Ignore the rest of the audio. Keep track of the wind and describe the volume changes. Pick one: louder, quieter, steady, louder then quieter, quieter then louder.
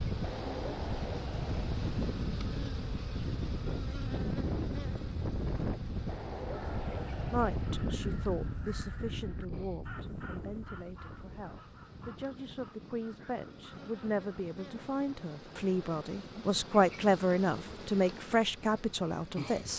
quieter.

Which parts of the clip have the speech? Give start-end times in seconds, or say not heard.
7.3-19.7.